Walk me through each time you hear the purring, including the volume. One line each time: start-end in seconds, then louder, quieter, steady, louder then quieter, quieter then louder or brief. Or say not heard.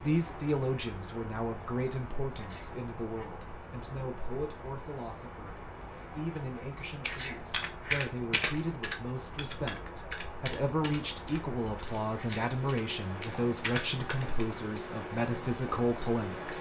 not heard.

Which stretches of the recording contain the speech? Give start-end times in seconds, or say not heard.
0.0-16.5.